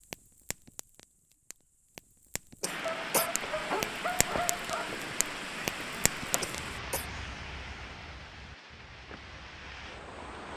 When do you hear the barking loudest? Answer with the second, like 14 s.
4 s.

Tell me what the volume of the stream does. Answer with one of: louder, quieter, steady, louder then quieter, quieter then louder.
quieter.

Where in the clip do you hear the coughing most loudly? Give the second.
3 s.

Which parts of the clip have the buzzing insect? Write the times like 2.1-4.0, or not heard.
not heard.